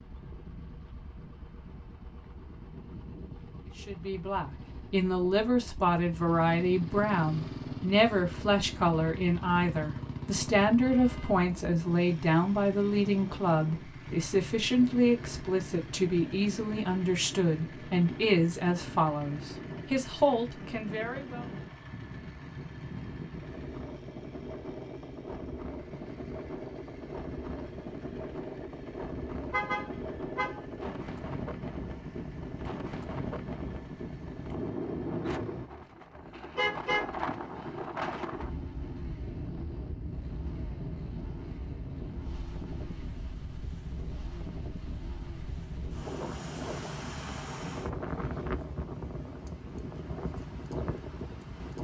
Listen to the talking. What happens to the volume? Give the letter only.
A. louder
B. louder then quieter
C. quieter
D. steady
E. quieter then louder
D.